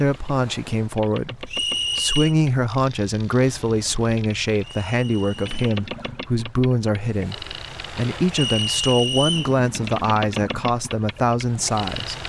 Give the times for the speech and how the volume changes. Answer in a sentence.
The speech can be heard from 0.0 to 12.2 s, at a steady volume.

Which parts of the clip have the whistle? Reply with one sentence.
The whistle can be heard from 1.4 to 2.4 s, from 4.6 to 5.7 s and from 8.3 to 9.6 s.